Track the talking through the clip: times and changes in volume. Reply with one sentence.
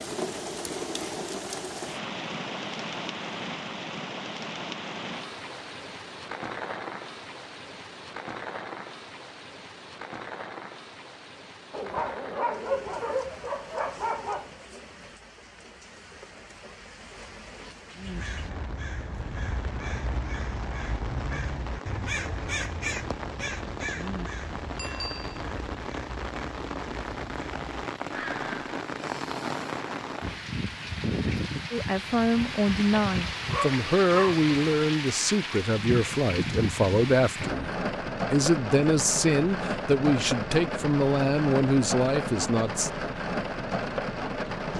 You can hear the talking from 31.7 to 42.9 s, at a steady volume.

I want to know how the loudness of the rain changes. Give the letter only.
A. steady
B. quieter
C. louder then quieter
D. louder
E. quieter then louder
E.